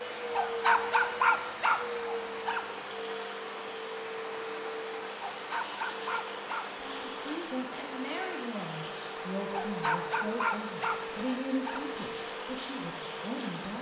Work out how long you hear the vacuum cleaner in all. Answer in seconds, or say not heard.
14 s.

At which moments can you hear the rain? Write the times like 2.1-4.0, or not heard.
0.0-13.7.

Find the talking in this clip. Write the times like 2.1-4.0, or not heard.
6.7-13.7.